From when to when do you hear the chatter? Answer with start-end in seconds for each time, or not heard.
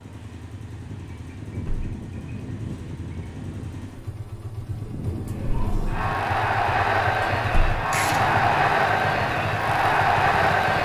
5.2-10.7.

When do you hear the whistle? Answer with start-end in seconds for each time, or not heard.
not heard.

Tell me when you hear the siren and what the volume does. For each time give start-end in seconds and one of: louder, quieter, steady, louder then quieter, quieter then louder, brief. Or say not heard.
not heard.